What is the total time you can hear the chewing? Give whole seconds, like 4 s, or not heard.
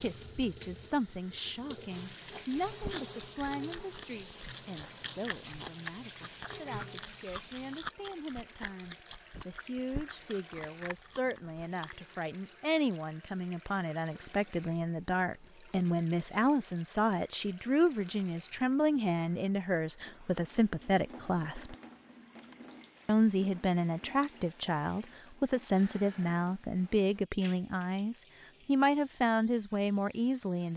10 s.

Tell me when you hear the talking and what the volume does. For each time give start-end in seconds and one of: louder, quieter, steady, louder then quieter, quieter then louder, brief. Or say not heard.
0.0-21.8 quieter then louder
23.1-30.7 steady.